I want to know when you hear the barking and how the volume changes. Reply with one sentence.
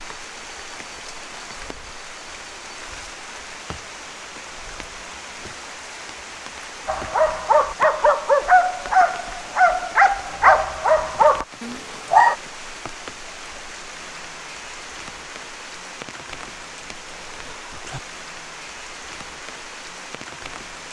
You can hear the barking from 6.8 to 12.3 s, at a steady volume.